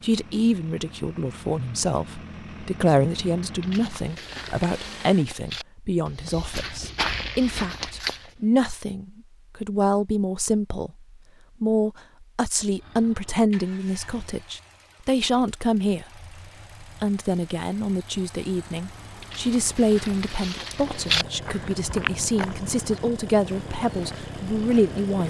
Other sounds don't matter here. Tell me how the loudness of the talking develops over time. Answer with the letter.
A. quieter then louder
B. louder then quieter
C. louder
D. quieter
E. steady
E.